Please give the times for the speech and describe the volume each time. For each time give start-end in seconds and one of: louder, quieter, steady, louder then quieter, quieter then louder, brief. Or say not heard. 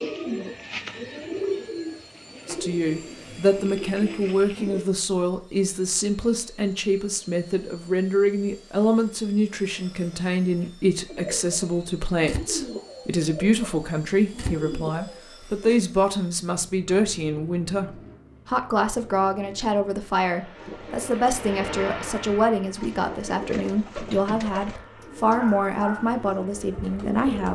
2.5-27.5 steady.